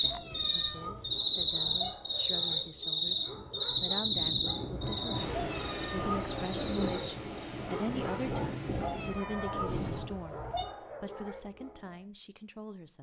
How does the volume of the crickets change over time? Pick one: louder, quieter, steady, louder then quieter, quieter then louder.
quieter.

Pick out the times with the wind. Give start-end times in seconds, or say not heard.
0.0-10.1.